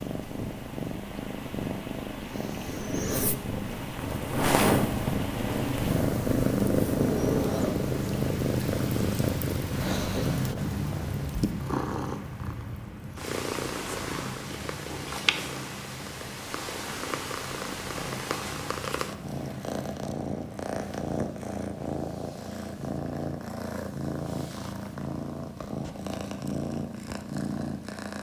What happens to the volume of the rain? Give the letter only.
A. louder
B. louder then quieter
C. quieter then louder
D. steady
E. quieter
B.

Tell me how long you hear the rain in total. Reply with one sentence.
You can hear the rain for 21 seconds altogether.